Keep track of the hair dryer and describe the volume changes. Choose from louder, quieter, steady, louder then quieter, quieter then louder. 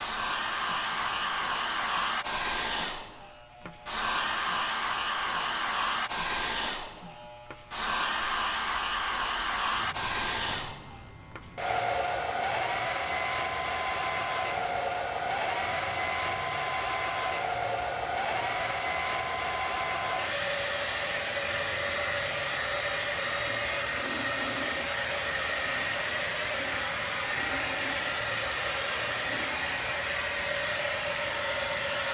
steady.